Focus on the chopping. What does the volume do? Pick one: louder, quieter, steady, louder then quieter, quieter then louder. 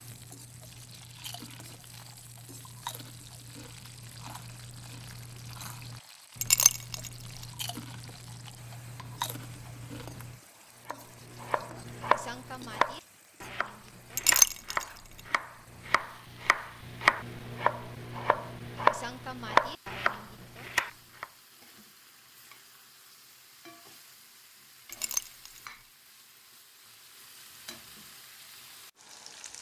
quieter then louder.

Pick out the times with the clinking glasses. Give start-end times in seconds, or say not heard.
6.4-7.1, 14.2-14.8, 24.9-25.6.